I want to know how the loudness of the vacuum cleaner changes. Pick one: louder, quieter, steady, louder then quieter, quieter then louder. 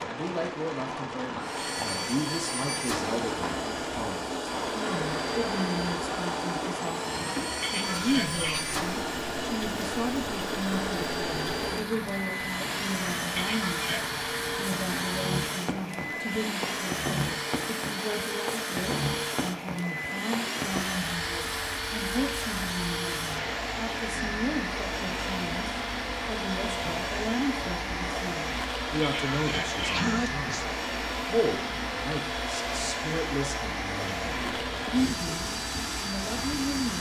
steady.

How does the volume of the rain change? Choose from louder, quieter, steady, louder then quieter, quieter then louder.
steady.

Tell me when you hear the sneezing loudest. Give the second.
30 s.